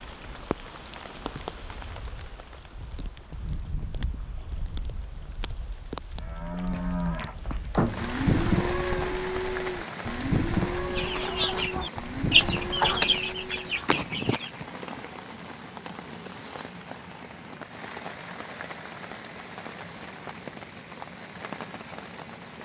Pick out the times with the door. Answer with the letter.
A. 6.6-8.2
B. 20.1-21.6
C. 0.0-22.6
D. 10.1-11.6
A.